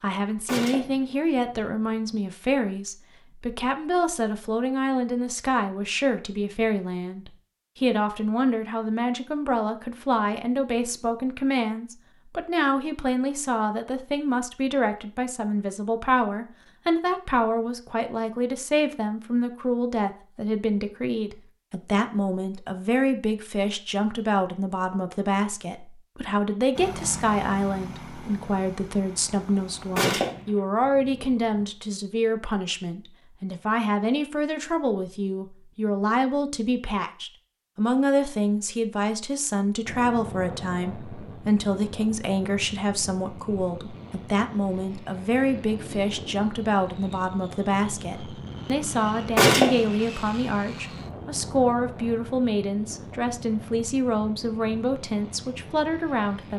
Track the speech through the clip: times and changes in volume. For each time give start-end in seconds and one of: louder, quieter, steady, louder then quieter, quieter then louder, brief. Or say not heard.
0.0-56.5 steady.